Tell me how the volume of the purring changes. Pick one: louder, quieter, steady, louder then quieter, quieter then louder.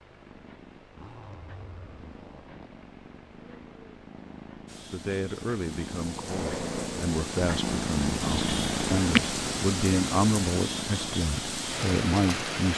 louder then quieter.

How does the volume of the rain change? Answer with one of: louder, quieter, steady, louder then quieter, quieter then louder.
louder.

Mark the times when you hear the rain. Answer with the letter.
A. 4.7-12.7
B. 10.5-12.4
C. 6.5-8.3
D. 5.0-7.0
A.